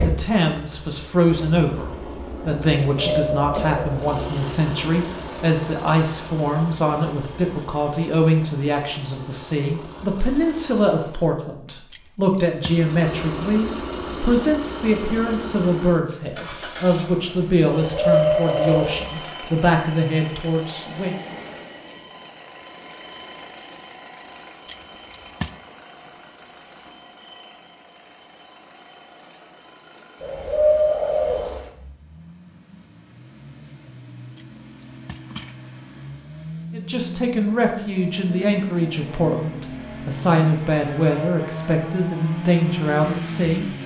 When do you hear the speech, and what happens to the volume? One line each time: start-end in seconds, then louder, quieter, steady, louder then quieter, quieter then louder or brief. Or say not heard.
0.0-21.1 steady
36.7-43.6 steady.